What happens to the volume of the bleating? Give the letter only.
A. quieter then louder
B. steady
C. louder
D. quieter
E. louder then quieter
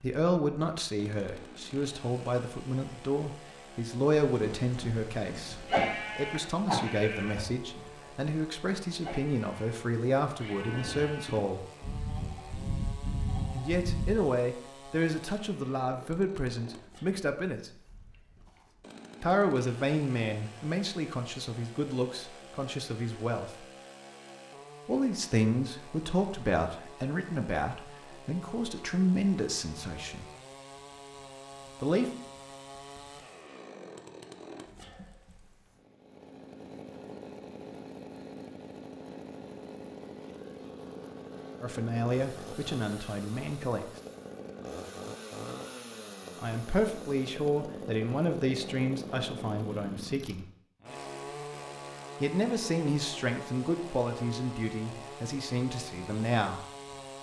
A.